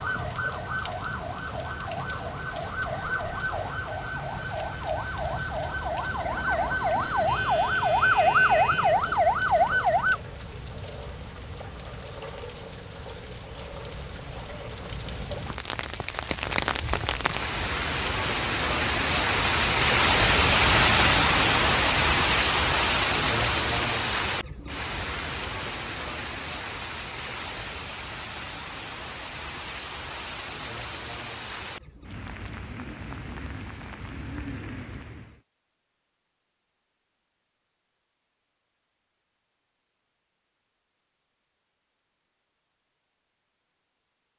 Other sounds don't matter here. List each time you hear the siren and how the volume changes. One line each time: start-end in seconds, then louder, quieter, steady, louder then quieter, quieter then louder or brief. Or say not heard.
0.0-10.2 louder.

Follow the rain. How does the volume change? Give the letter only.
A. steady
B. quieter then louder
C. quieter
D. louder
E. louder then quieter
E.